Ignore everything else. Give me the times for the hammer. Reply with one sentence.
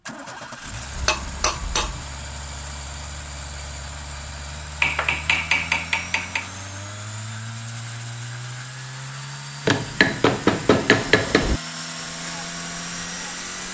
You can hear the hammer from 0.9 to 2.0 s, from 4.8 to 6.5 s and from 9.7 to 11.6 s.